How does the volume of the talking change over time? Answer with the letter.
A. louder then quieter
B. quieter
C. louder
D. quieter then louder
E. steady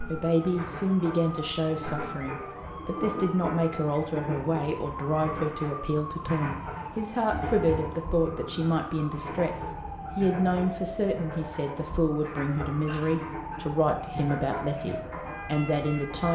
E.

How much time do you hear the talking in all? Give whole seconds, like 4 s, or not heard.
16 s.